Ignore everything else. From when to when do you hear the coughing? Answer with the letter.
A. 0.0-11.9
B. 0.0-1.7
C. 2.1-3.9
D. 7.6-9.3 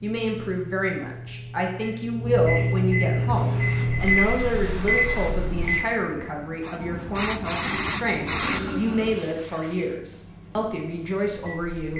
D.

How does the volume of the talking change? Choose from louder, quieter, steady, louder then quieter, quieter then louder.
steady.